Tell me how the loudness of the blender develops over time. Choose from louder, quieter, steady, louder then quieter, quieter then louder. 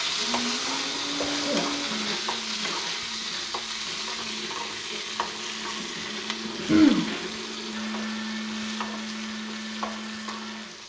quieter then louder.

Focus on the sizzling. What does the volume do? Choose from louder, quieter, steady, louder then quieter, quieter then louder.
quieter.